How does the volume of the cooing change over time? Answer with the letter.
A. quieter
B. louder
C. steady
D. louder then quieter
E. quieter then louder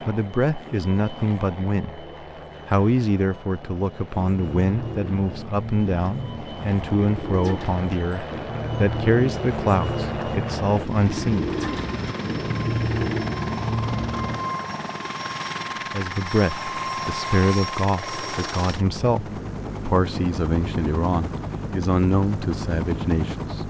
B.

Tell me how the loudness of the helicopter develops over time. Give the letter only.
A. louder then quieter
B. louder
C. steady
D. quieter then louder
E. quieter
B.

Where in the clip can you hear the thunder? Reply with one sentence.
You can't hear the thunder here.